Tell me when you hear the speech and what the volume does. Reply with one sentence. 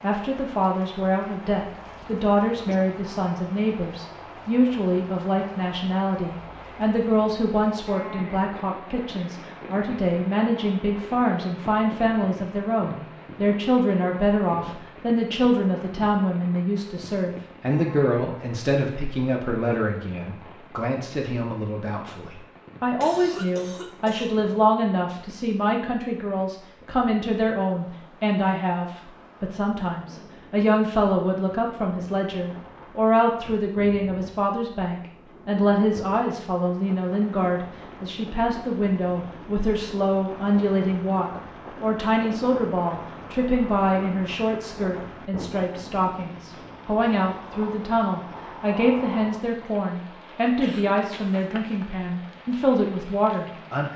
The speech can be heard from 0.0 to 53.9 s, at a steady volume.